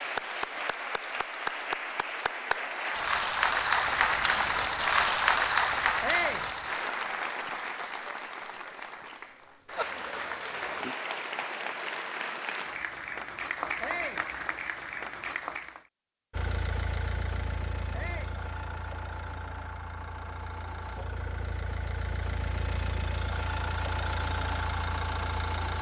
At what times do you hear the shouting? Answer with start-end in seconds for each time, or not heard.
6.0-6.5, 13.8-14.2, 17.9-18.4.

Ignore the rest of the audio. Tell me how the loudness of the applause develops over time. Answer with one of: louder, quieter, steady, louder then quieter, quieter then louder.
louder then quieter.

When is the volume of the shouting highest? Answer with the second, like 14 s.
6 s.